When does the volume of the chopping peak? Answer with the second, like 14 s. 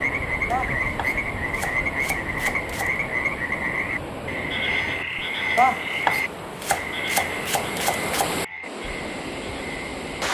6 s.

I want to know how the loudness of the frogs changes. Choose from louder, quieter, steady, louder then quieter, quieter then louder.
quieter.